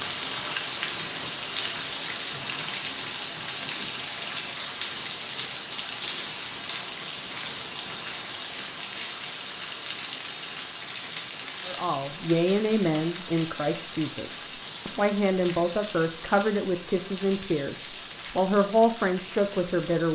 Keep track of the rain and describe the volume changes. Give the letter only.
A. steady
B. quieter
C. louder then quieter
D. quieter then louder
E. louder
B.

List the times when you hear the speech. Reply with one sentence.
The speech can be heard from 11.7 to 20.1 s.